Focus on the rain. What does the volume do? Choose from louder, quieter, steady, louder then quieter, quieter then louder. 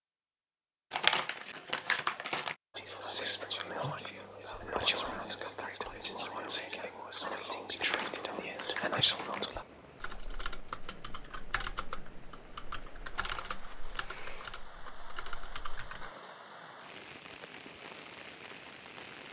louder.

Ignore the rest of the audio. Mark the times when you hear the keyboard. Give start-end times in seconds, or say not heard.
10.0-16.1.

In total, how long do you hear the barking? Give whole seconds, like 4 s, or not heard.
not heard.